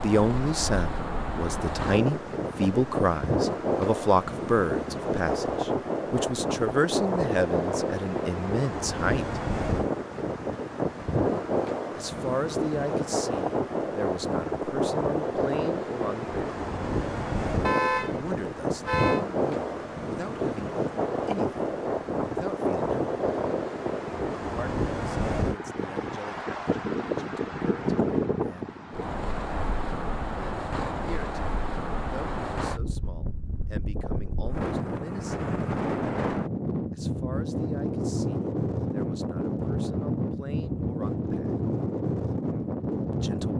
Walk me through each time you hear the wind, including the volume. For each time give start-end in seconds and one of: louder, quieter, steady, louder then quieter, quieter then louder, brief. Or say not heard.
0.0-43.5 steady.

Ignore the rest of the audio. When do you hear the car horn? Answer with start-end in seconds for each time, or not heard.
17.6-19.2.